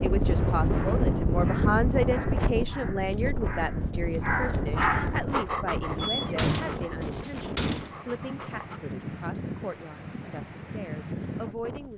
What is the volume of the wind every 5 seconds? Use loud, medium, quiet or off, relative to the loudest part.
loud, medium, medium.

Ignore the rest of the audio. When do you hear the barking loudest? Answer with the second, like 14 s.
5 s.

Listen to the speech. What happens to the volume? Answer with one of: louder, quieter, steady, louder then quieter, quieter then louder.
quieter.